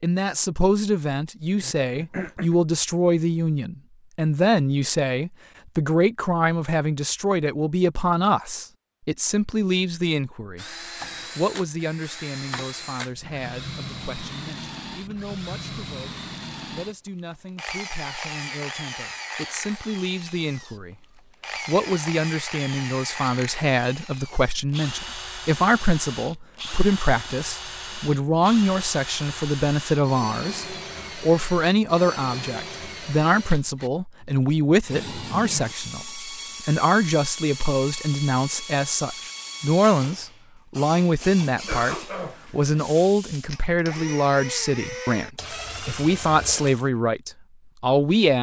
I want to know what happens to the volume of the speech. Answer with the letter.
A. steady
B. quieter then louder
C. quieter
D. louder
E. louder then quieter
B.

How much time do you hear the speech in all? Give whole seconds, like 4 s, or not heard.
48 s.